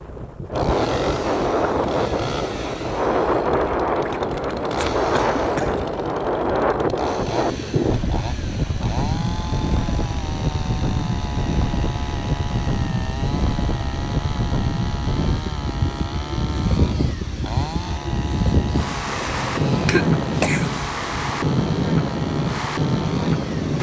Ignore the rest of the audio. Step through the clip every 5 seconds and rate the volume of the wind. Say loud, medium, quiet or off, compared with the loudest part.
loud, loud, medium, loud, loud.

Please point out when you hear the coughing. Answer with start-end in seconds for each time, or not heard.
4.0-5.8, 19.1-20.7.